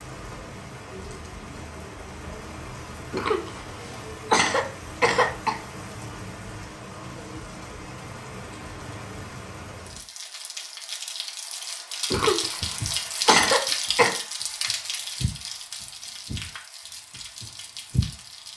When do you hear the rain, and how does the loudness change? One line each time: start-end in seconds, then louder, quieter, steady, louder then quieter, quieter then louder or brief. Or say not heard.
0.0-18.5 louder then quieter.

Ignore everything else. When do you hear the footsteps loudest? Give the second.
18 s.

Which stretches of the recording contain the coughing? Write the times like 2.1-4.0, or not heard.
3.1-5.6, 12.1-14.2.